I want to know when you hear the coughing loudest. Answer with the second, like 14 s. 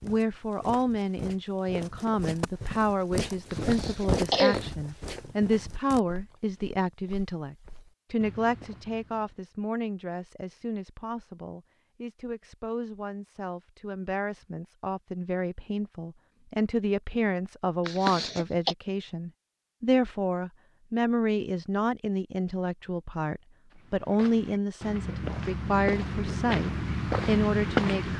4 s.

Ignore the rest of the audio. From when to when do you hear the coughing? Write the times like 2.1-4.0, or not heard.
3.5-4.6, 17.9-18.8.